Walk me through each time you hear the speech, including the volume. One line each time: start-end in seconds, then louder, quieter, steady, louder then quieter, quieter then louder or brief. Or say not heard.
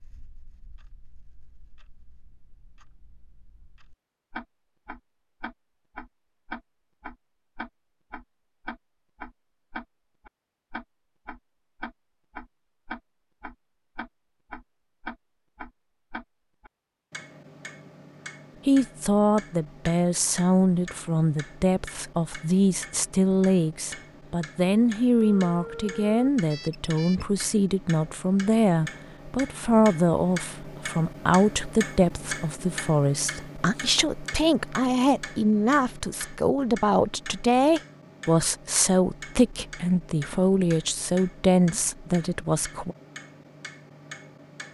18.6-43.0 steady.